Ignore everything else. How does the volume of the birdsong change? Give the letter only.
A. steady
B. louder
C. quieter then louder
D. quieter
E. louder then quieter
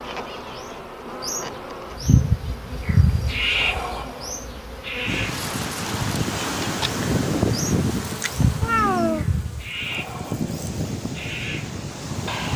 D.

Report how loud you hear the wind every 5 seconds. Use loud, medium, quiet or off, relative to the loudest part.
off, loud, loud.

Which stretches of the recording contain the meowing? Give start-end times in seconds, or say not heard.
8.6-9.2.